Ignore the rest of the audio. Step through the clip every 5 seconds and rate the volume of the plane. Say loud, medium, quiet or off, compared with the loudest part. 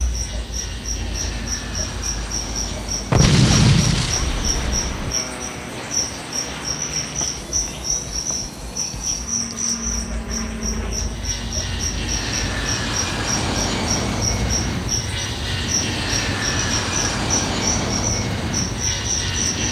medium, medium, loud, loud.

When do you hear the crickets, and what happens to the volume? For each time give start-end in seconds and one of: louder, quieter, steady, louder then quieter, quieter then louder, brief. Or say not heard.
0.0-19.6 steady.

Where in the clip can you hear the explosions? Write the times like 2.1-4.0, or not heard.
3.1-5.2.